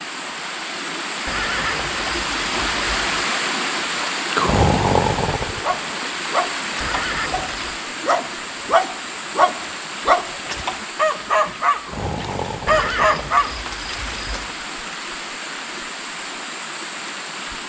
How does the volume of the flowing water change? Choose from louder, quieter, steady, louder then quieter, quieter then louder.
quieter.